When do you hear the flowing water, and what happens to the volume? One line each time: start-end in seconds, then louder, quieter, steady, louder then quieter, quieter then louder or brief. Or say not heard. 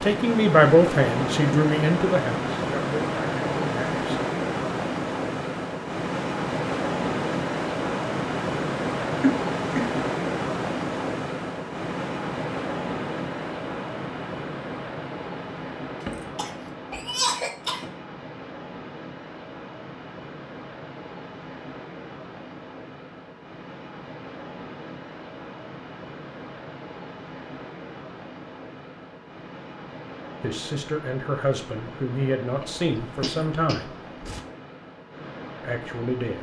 0.0-36.3 quieter.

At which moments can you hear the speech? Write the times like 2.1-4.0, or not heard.
0.0-4.2, 30.4-33.9, 35.6-36.3.